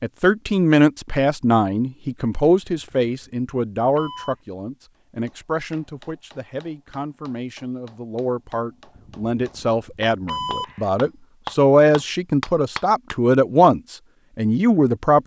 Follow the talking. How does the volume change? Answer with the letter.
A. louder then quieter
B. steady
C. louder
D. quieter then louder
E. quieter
D.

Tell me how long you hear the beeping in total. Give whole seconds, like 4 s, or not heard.
4 s.